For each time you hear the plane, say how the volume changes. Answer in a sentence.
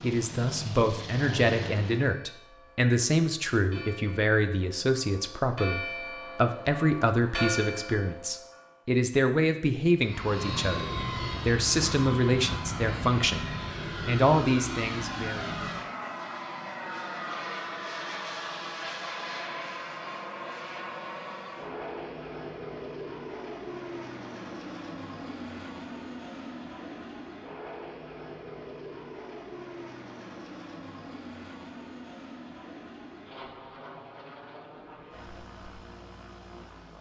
The plane can be heard briefly from 0.0 to 2.1 s; and from 9.9 to 36.9 s, getting quieter.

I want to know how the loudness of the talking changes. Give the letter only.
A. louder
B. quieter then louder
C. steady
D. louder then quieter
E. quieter
C.